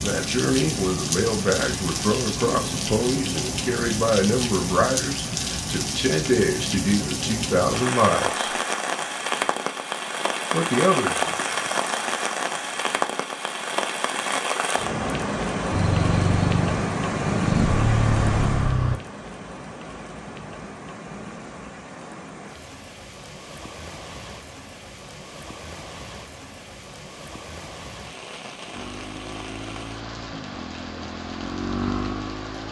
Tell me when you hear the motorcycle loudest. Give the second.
18 s.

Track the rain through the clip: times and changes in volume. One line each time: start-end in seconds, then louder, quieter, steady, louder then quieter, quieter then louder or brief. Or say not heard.
0.0-32.6 quieter.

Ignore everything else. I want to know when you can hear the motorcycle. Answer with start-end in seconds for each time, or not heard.
15.7-19.0, 28.7-32.6.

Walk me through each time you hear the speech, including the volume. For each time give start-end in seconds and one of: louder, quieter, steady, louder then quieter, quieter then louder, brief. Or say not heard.
0.0-8.4 steady
10.5-11.3 brief.